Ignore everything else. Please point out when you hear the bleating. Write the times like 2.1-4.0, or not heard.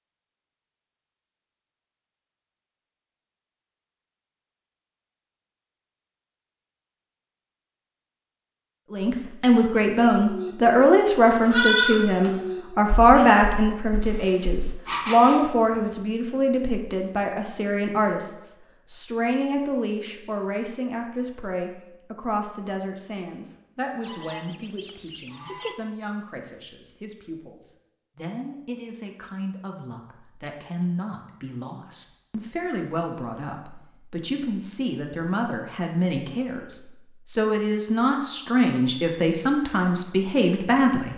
10.2-15.8.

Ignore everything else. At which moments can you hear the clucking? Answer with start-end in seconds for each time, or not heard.
24.0-25.8.